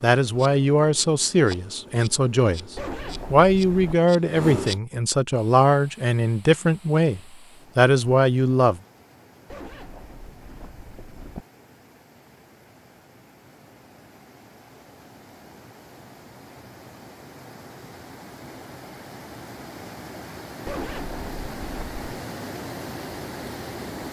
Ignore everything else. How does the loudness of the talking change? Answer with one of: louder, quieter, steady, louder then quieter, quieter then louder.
steady.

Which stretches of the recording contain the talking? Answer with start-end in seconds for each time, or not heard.
0.0-8.8.